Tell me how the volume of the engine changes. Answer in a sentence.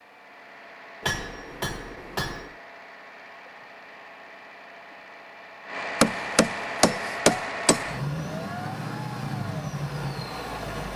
The loudness of the engine goes up.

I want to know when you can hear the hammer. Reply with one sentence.
The hammer can be heard from 1.0 to 2.5 s and from 6.0 to 7.9 s.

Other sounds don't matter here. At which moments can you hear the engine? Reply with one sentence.
You can hear the engine from 0.0 to 10.9 s.